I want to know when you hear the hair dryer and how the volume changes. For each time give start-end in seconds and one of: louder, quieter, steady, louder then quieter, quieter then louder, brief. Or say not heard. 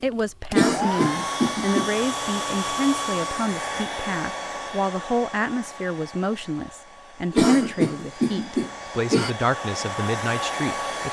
0.0-11.0 quieter then louder.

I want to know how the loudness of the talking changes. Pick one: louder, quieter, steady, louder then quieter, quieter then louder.
steady.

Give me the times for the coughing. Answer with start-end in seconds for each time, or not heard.
0.5-1.9, 7.3-9.3.